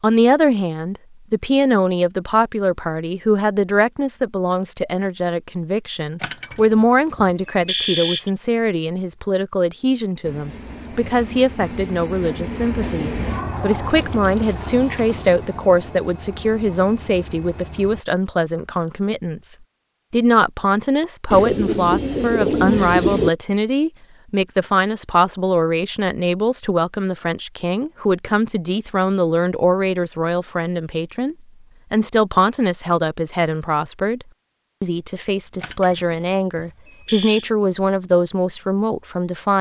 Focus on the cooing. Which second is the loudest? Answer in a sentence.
The volume of the cooing peaks at 23 seconds.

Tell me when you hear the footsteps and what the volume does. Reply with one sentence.
The footsteps can't be heard in this clip.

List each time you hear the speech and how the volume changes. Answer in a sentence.
You can hear the speech from 0.0 to 39.5 s, at a steady volume.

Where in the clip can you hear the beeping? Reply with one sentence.
The beeping can be heard from 6.2 to 8.3 s and from 35.6 to 37.5 s.